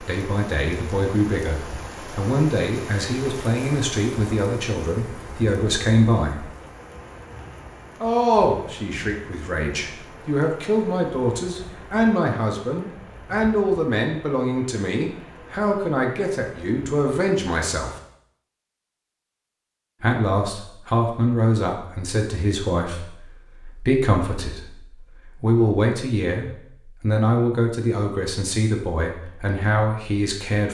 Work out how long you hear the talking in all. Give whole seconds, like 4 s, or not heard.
27 s.